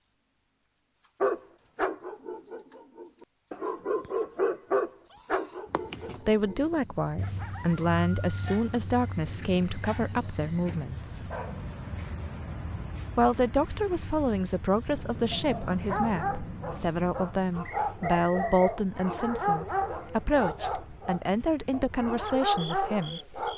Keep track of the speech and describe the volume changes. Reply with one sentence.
The volume of the speech stays about the same.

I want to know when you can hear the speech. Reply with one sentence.
You can hear the speech from 6.2 to 11.2 s and from 13.2 to 23.2 s.